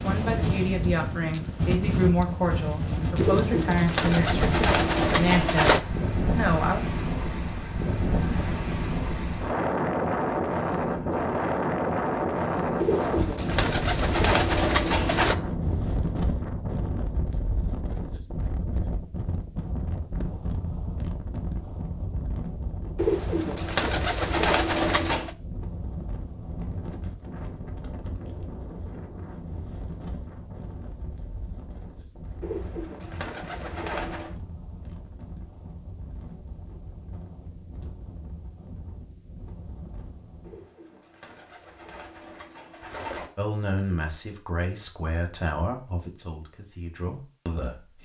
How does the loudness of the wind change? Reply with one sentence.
The loudness of the wind goes down.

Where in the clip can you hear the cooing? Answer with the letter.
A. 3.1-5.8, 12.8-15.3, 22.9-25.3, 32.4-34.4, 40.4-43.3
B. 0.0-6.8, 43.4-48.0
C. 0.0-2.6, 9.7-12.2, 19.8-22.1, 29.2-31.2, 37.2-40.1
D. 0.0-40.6
A.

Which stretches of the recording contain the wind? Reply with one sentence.
The wind can be heard from 0.0 to 40.6 s.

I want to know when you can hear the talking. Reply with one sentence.
The talking can be heard from 0.0 to 6.8 s and from 43.4 to 48.0 s.